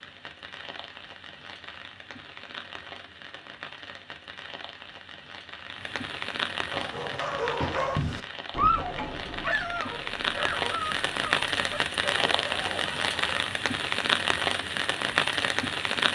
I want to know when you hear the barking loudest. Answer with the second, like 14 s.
9 s.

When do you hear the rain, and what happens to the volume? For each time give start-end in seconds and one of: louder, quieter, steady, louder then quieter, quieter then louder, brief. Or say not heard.
0.0-16.0 louder.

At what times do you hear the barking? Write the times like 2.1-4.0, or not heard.
6.7-13.5.